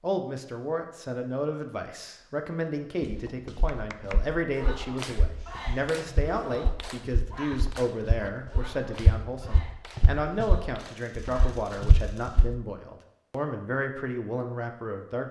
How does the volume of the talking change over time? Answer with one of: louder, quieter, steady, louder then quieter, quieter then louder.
steady.